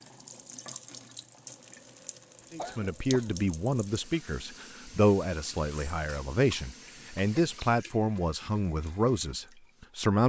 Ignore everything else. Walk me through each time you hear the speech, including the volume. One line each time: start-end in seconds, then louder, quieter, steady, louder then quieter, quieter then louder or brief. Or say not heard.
2.5-10.2 steady.